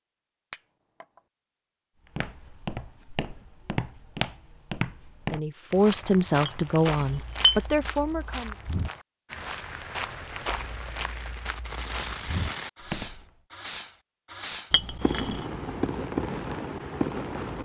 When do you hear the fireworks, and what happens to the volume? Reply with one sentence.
You can hear the fireworks from 9.2 to 17.6 s, getting louder.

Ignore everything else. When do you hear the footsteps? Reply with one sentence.
You can hear the footsteps from 2.1 to 13.2 s.